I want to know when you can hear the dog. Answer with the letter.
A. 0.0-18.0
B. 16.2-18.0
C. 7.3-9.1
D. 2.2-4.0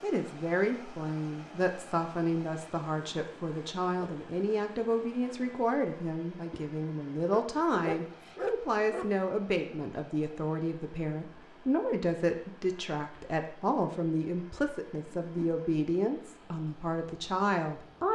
C.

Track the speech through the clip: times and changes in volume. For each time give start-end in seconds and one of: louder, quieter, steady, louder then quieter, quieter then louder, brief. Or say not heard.
0.0-18.0 steady.